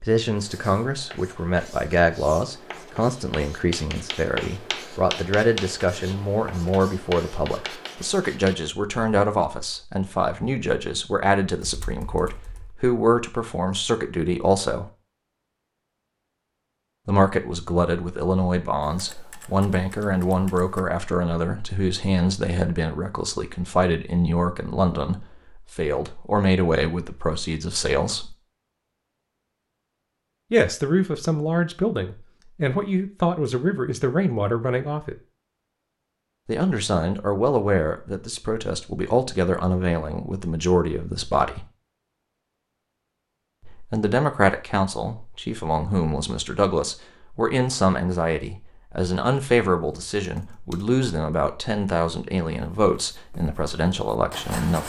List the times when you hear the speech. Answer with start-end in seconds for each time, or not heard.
0.0-14.8, 17.1-28.4, 30.5-35.1, 36.5-41.6, 43.6-54.8.